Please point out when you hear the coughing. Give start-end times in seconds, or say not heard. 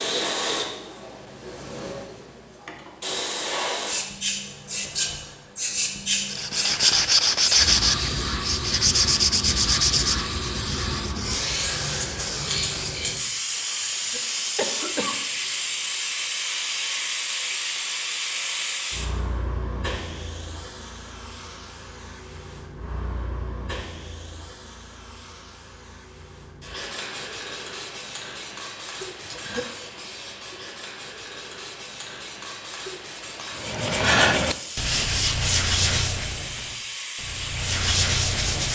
13.8-15.2, 29.0-29.7.